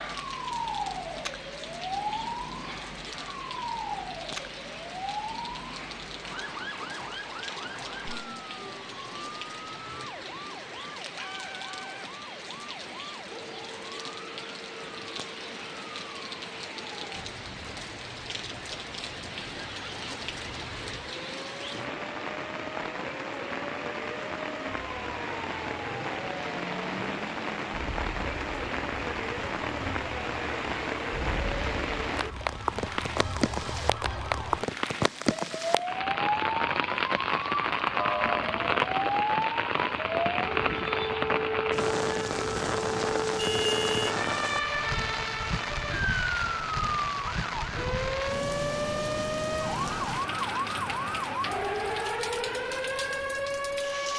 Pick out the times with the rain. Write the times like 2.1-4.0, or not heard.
0.0-54.1.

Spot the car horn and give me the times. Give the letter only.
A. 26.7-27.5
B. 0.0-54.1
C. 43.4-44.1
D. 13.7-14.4
C.